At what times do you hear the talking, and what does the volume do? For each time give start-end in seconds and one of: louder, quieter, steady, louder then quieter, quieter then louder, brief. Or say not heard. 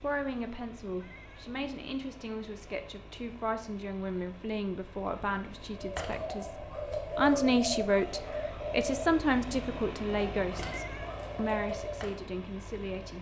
0.0-13.1 louder then quieter.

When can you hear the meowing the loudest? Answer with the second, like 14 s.
11 s.